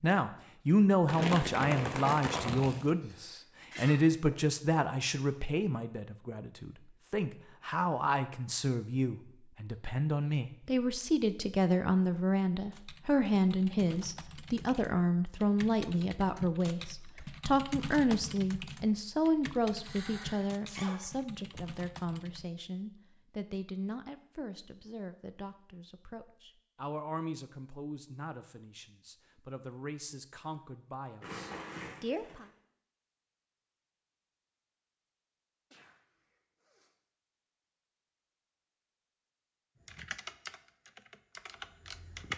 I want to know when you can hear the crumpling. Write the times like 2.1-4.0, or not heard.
1.1-2.9, 31.2-32.5.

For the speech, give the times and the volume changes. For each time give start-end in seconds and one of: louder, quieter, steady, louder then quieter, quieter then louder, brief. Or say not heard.
0.0-32.5 quieter.